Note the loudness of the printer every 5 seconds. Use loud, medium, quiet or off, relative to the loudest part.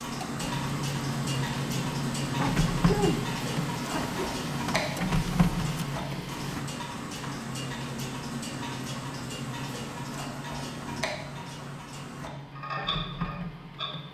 loud, loud, medium.